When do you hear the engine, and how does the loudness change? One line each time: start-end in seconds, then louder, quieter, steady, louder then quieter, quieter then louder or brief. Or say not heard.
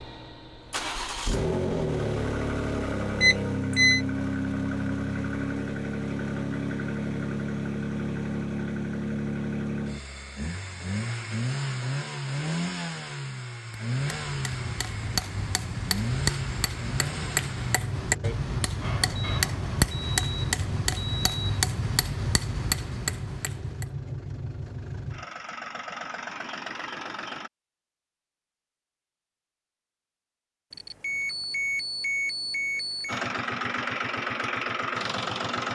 0.0-27.5 quieter
33.0-35.7 brief.